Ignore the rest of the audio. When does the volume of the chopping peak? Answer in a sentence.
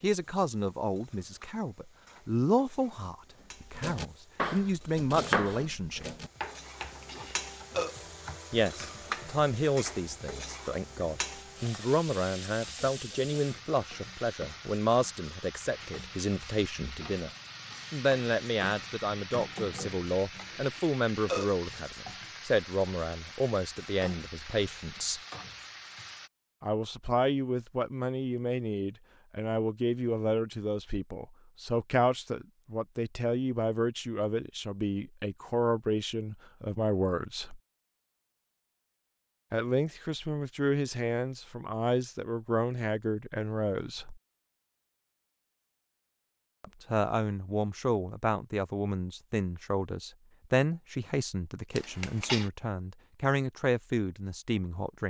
The volume of the chopping peaks at 5 seconds.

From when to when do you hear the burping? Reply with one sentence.
You can hear the burping from 6.8 to 8.0 s, from 20.6 to 21.5 s and from 51.8 to 52.5 s.